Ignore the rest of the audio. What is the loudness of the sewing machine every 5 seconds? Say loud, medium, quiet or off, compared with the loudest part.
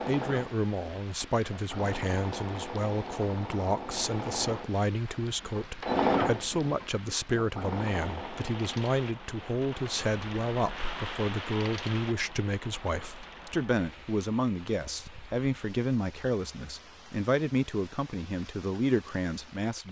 medium, loud, off, off.